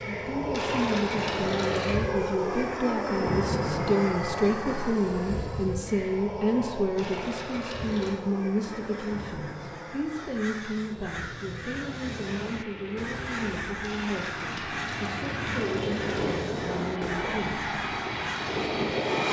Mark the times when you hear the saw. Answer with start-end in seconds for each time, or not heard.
not heard.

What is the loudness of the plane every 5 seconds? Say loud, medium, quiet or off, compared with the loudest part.
loud, medium, medium, loud.